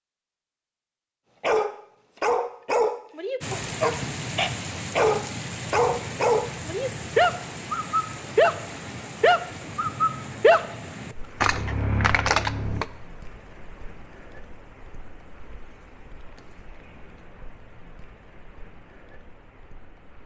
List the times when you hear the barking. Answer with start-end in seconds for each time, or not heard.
1.4-12.8.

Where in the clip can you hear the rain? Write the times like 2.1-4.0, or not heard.
3.4-20.2.